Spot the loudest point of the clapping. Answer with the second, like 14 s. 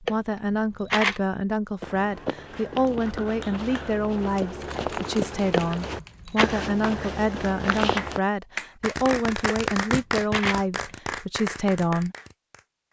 10 s.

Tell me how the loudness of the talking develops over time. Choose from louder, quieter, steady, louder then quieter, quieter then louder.
steady.